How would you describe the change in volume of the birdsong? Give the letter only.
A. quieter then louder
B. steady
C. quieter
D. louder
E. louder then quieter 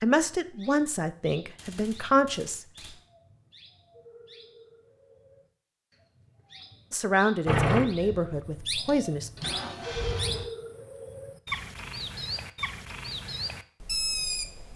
D.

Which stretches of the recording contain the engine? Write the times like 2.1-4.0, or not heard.
7.5-10.4.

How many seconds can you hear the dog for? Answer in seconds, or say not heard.
not heard.